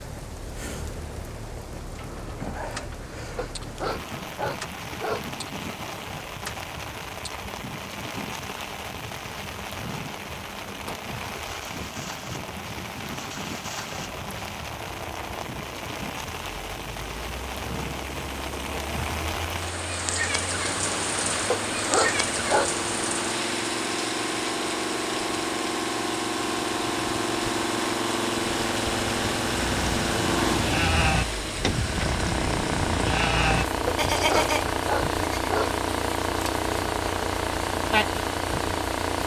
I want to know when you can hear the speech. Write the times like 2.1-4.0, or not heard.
not heard.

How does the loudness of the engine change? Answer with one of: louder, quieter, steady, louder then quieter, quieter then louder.
louder.